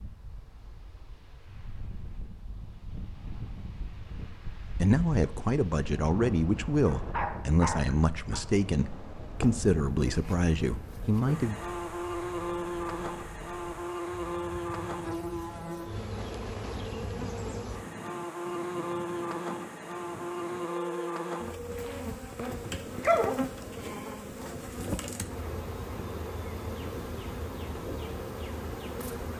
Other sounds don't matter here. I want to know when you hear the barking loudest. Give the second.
23 s.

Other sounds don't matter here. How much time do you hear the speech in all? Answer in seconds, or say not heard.
7 s.